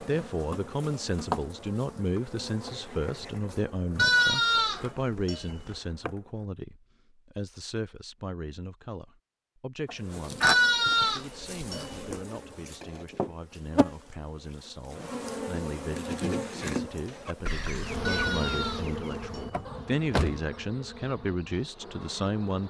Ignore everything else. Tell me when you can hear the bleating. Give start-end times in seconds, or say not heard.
4.0-5.8, 10.4-12.2, 18.1-19.8.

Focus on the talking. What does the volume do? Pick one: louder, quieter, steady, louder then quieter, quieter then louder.
quieter then louder.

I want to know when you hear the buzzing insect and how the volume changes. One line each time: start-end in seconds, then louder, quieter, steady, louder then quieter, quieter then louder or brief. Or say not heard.
0.0-6.5 quieter
9.8-22.6 quieter.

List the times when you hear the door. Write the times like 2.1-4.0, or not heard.
19.5-20.4.